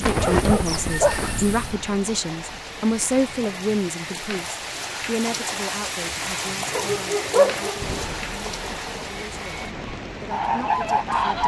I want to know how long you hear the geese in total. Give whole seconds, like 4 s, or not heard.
3 s.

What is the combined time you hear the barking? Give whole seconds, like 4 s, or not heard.
3 s.